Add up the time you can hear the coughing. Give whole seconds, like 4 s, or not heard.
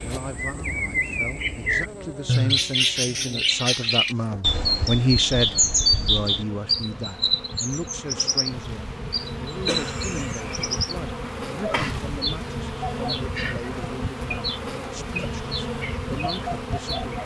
2 s.